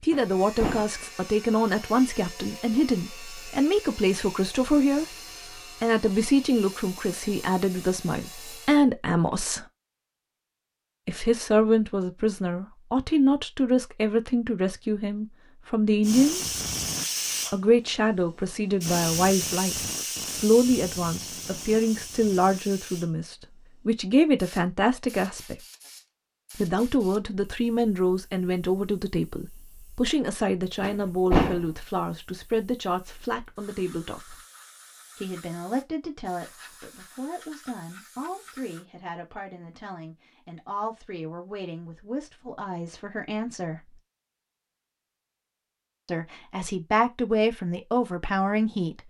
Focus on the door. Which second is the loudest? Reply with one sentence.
The loudest moment of the door is at 31 seconds.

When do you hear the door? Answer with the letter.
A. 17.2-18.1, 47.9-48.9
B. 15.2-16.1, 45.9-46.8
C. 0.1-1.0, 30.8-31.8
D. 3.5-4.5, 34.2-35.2
C.